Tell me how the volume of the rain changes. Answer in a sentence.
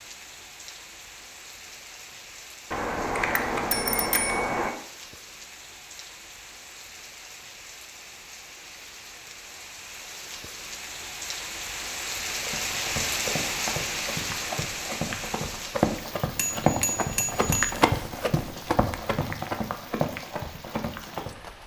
The loudness of the rain goes up, then down.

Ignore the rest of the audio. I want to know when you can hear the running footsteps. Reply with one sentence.
The running footsteps can be heard from 12.4 to 21.4 s.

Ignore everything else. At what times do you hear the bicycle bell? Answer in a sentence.
You can hear the bicycle bell from 2.7 to 4.7 s and from 16.4 to 17.8 s.